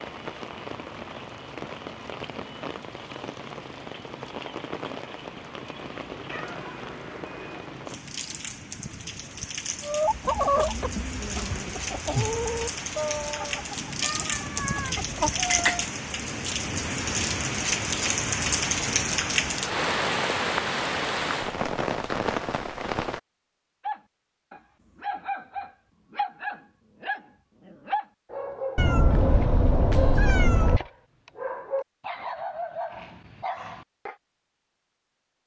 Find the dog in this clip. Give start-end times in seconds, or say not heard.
23.9-34.1.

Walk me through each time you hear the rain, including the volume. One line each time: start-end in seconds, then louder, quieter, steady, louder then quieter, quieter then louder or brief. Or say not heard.
0.0-23.2 louder.